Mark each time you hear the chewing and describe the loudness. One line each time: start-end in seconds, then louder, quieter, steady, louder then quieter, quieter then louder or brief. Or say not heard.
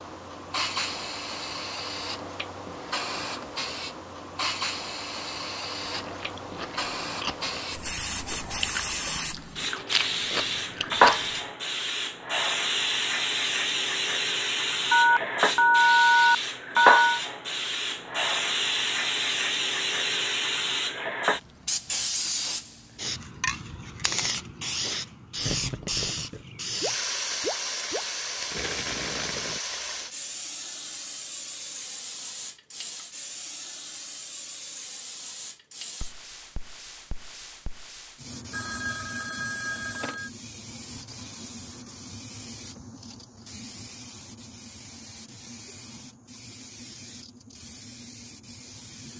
5.8-11.4 louder.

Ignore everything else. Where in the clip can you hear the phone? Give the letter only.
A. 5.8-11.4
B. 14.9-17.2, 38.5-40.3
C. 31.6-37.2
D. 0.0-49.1
B.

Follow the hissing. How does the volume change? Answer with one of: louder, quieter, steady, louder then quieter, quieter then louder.
louder then quieter.